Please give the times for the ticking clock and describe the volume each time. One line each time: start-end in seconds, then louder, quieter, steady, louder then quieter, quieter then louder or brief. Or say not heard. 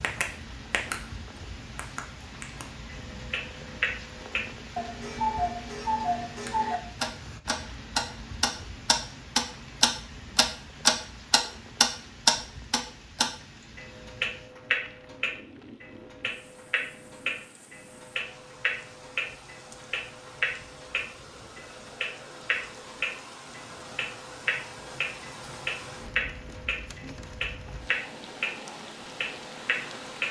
0.0-0.9 brief
1.8-30.2 louder then quieter.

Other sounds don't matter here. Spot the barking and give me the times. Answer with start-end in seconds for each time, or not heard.
not heard.